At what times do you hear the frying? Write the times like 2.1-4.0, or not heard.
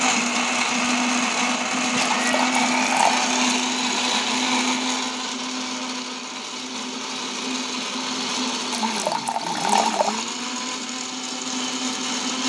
not heard.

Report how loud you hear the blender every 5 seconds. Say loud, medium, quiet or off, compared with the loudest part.
loud, medium, medium.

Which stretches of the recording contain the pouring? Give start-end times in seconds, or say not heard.
2.1-3.2, 8.7-10.2.